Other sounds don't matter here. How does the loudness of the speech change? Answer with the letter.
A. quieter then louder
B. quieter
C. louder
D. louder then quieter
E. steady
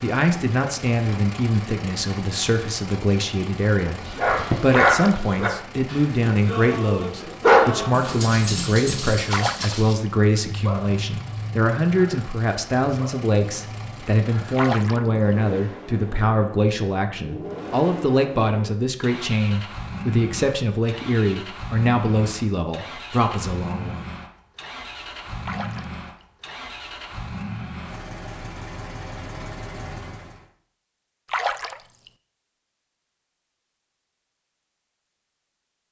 E.